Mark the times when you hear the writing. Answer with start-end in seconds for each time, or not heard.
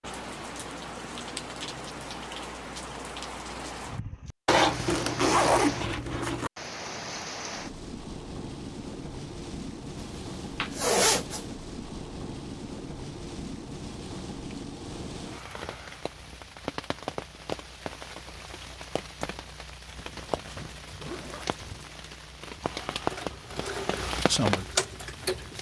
not heard.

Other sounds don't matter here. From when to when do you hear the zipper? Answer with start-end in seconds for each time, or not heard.
4.5-6.5, 10.0-11.4, 19.9-21.9.